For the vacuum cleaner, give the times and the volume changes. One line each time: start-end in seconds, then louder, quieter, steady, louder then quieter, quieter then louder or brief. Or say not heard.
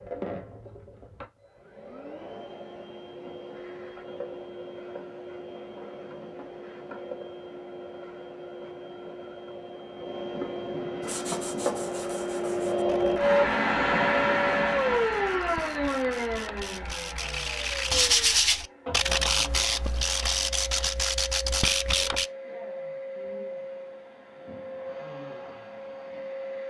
0.0-26.6 louder then quieter.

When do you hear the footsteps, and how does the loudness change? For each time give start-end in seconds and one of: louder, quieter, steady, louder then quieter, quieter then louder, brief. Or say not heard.
not heard.